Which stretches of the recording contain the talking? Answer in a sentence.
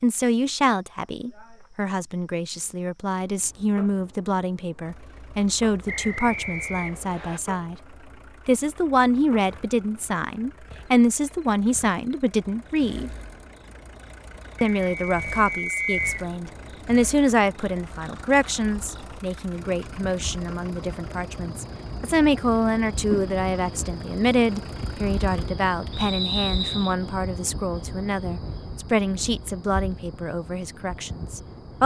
You can hear the talking from 0.0 to 7.8 s, from 8.4 to 13.1 s and from 14.6 to 31.8 s.